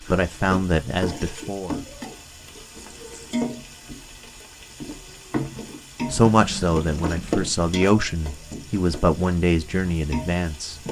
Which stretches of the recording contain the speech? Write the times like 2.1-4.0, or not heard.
0.1-1.9, 6.1-10.8.